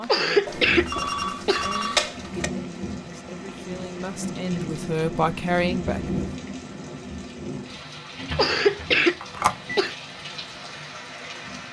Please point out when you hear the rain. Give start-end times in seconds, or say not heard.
0.0-11.6.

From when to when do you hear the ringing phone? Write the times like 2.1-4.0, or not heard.
0.5-2.5, 9.2-9.8.